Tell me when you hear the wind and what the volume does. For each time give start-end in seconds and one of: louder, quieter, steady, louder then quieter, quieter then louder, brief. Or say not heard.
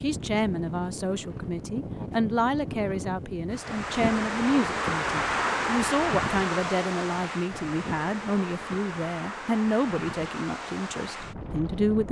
0.0-12.0 louder then quieter.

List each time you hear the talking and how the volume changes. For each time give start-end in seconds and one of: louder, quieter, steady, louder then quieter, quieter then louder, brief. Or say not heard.
0.0-12.0 steady.